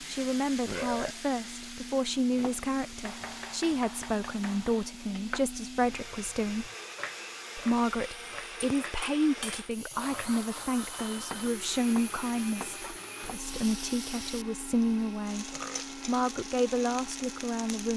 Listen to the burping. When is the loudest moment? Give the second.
1 s.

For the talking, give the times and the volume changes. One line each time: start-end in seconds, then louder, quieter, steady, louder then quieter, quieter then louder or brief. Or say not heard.
0.0-6.7 steady
7.5-17.9 steady.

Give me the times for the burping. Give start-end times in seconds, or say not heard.
0.7-1.1, 15.5-15.9.